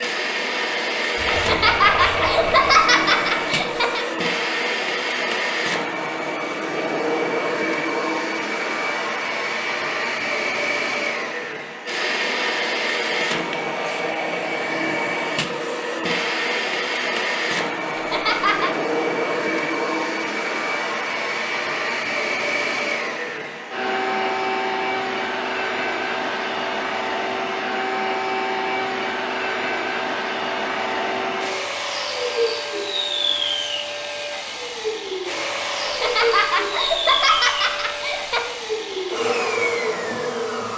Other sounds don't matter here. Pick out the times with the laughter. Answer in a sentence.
The laughter can be heard from 1.3 to 4.0 s, from 17.9 to 18.7 s and from 35.8 to 38.5 s.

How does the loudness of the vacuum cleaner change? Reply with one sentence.
The loudness of the vacuum cleaner stays about the same.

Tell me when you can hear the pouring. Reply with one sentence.
The pouring can be heard from 1.1 to 2.7 s.